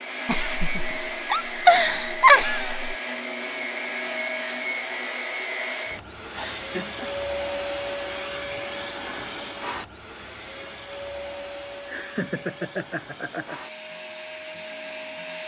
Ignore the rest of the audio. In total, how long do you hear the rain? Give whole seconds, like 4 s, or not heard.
not heard.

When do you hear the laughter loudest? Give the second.
2 s.